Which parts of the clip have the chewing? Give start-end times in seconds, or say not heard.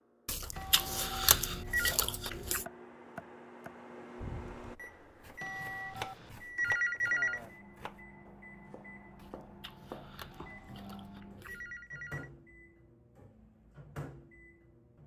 0.2-2.6, 9.2-11.8.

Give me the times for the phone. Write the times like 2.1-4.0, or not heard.
0.6-1.9, 5.4-7.4, 10.3-12.3.